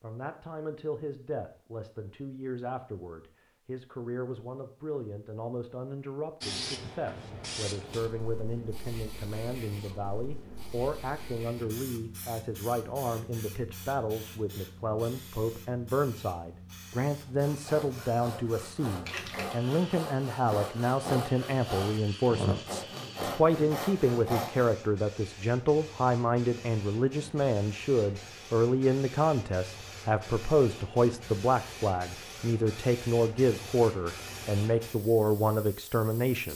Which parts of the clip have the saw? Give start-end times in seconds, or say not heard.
17.2-24.8.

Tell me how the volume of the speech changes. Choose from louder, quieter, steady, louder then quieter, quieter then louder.
louder.